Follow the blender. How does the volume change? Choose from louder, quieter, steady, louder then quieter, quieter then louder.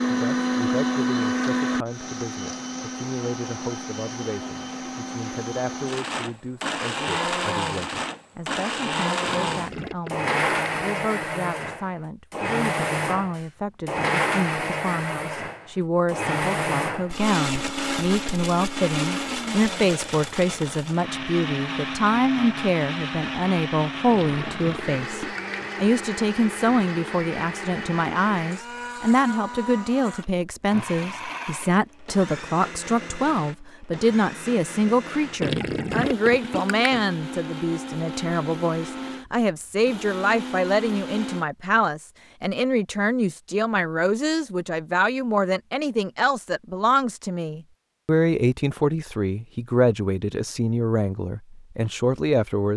quieter.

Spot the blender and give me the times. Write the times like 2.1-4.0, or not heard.
0.0-41.5.